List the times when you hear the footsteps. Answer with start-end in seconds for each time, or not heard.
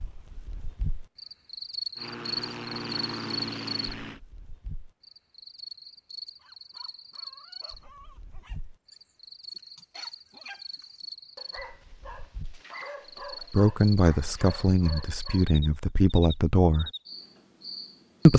not heard.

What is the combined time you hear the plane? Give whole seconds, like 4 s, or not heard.
2 s.